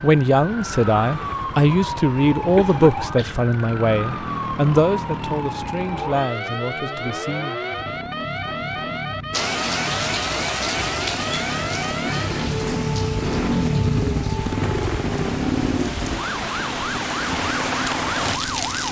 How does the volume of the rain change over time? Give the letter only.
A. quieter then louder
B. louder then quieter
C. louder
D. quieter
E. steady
A.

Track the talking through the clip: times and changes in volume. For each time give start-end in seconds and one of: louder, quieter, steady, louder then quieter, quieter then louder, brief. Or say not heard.
0.0-7.7 quieter.